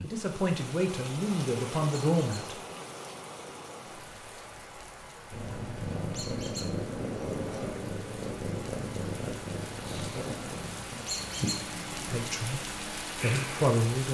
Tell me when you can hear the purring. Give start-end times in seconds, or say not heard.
5.3-13.8.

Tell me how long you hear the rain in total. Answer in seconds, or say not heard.
14 s.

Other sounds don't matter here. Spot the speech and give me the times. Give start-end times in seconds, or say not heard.
0.0-2.5, 12.1-14.0.